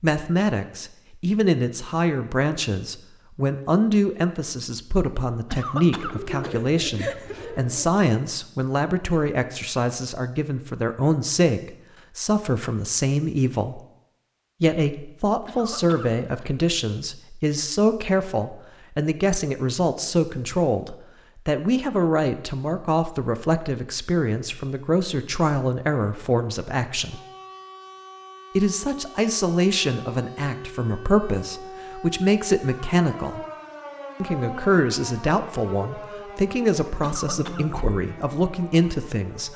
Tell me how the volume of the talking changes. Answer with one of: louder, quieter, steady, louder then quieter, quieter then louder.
steady.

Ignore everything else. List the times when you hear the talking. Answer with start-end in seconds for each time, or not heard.
0.0-13.8, 14.6-27.2, 28.6-33.4, 34.2-39.5.